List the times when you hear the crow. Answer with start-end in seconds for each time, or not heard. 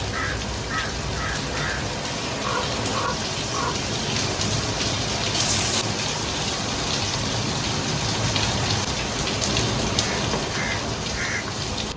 0.0-3.8, 9.9-11.9.